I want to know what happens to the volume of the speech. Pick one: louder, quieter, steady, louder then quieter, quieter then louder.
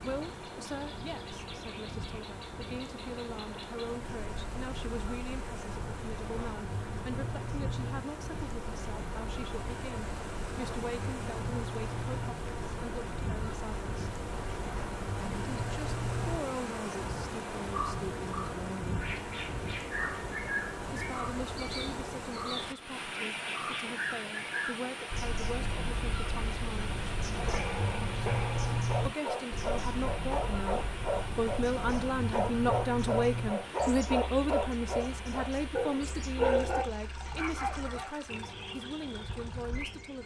louder.